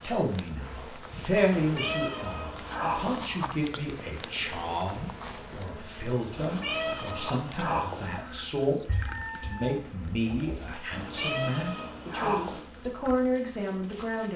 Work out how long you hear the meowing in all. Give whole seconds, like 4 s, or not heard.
5 s.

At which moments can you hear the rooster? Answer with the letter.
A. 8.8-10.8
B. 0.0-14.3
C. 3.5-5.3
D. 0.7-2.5
A.